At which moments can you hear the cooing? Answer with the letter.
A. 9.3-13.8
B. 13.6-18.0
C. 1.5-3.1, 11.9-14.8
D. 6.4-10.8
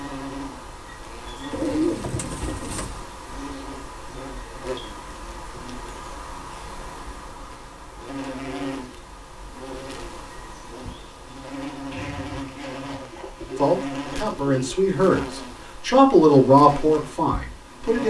C.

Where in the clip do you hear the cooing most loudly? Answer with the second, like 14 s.
2 s.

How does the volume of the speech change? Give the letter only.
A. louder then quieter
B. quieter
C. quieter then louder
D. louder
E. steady
A.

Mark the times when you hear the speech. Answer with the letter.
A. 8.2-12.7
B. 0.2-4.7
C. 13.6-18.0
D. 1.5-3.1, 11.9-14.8
C.